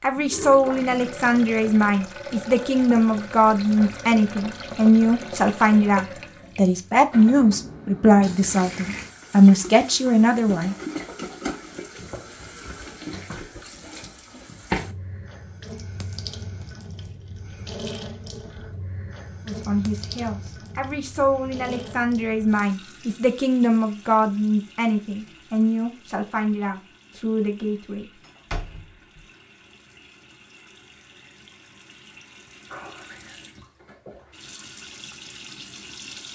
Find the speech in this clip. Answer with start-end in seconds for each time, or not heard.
0.0-10.8, 19.4-28.1.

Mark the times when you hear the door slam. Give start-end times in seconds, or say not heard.
28.2-29.2.